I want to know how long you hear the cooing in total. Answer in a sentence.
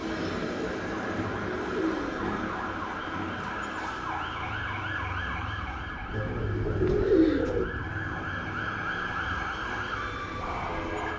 You can hear the cooing for 3 seconds altogether.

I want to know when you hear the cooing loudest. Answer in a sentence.
The loudest moment of the cooing is at 7 seconds.